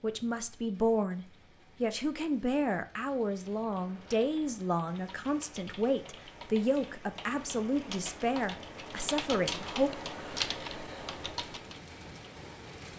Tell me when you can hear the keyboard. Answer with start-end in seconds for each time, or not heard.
3.4-11.8.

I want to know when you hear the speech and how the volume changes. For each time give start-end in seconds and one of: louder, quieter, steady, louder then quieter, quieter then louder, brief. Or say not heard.
0.0-9.9 steady.